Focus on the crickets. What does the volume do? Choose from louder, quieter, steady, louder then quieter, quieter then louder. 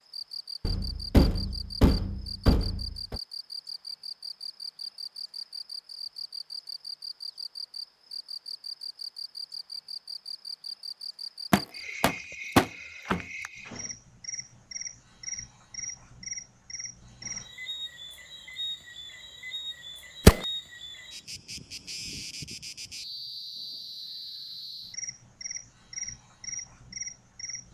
steady.